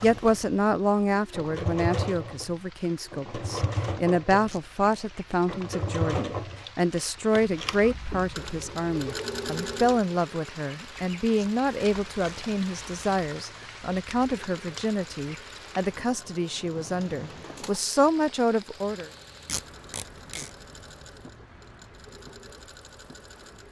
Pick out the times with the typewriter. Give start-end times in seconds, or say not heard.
not heard.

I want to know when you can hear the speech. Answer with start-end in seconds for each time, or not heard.
0.0-19.1.